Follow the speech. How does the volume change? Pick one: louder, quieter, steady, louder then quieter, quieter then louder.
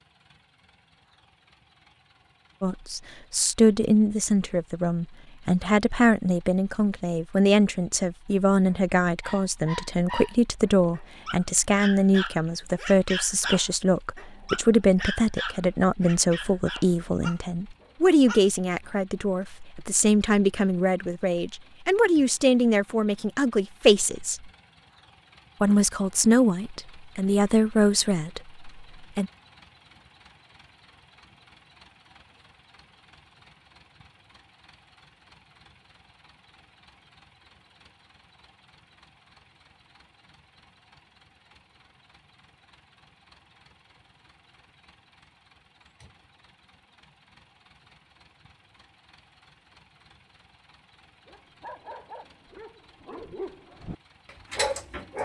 steady.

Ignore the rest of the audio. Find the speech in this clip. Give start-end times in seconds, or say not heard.
2.6-24.5, 25.6-29.3.